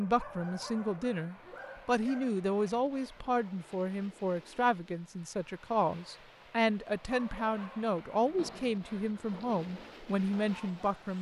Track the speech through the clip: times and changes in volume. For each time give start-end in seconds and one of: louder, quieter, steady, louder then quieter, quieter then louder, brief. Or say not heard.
0.0-11.1 steady.